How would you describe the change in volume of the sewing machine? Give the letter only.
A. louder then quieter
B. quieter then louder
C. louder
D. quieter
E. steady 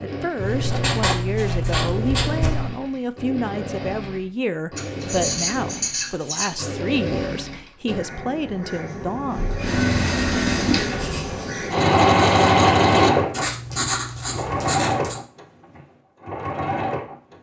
A.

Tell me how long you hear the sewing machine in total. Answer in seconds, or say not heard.
17 s.